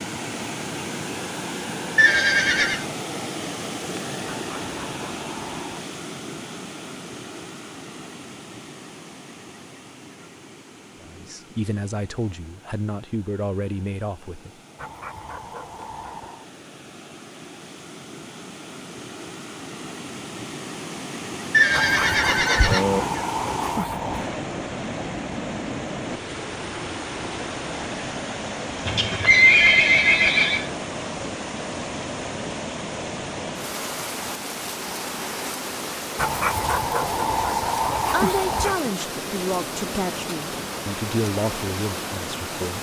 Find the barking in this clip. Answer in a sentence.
The barking can be heard from 4.2 to 5.8 s, from 14.8 to 16.4 s, from 21.7 to 24.3 s and from 36.1 to 38.9 s.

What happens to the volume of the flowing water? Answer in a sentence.
The loudness of the flowing water goes down, then up.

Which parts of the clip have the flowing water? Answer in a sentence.
The flowing water can be heard from 0.0 to 42.7 s.